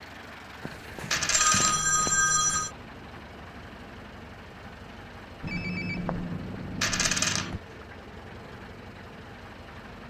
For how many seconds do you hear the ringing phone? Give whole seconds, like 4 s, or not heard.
4 s.